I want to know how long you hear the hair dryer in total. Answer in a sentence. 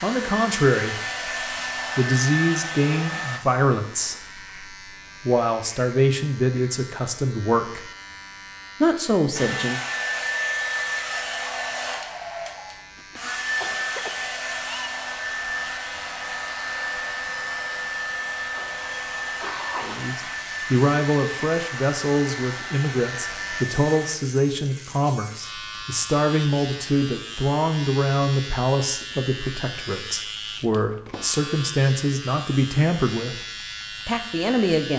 You can hear the hair dryer for 18 seconds altogether.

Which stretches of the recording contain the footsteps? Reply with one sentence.
You can't hear the footsteps here.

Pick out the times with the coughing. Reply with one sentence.
The coughing can be heard from 12.9 to 14.9 s and from 18.5 to 20.1 s.